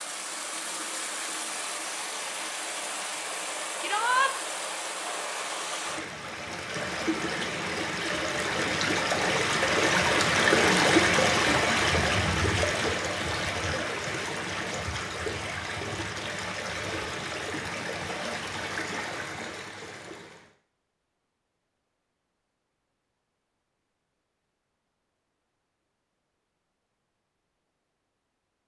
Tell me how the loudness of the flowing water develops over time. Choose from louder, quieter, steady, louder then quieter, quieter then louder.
louder then quieter.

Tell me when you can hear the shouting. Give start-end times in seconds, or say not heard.
3.8-4.3.